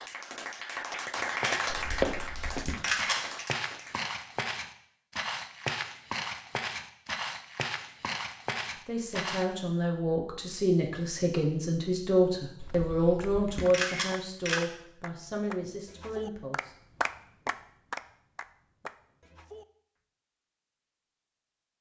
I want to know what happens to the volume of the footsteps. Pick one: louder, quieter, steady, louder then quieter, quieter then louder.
quieter.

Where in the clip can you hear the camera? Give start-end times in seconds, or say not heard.
1.7-3.1, 12.6-14.6.